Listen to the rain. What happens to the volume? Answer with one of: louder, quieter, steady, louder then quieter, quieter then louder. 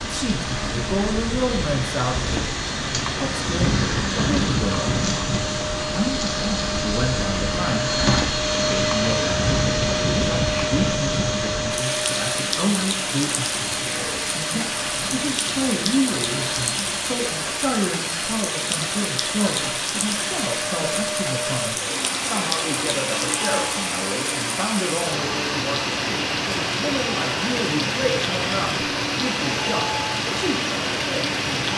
steady.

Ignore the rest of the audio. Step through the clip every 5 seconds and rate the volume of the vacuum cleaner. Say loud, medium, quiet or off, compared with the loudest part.
medium, loud, loud, medium, medium, medium, medium.